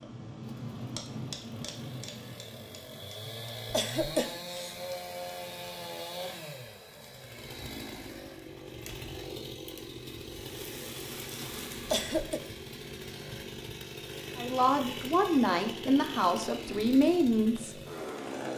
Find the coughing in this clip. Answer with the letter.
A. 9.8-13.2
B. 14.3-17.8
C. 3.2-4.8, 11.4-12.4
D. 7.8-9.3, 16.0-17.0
C.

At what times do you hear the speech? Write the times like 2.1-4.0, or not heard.
14.3-17.8.